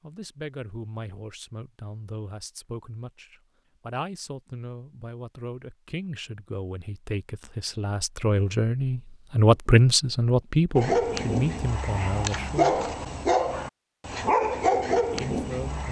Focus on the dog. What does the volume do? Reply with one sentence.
The volume of the dog goes up.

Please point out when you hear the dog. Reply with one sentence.
The dog can be heard from 10.8 to 15.8 s.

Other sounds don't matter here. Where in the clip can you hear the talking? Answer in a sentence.
The talking can be heard from 0.0 to 12.8 s and from 15.1 to 15.8 s.